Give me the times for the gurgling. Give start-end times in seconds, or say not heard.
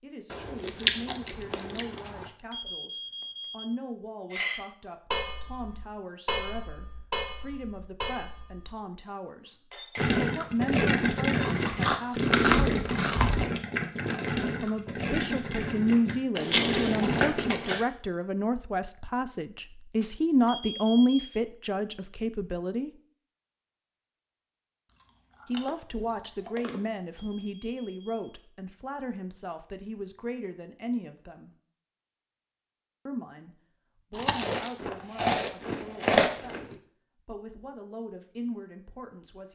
9.9-17.5.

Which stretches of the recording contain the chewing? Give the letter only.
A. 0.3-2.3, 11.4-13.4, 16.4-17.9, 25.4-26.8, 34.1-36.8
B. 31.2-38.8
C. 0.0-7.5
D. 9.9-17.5
A.